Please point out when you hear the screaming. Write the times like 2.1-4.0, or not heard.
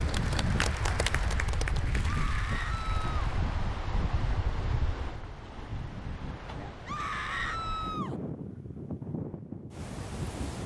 2.0-3.1, 6.8-8.2.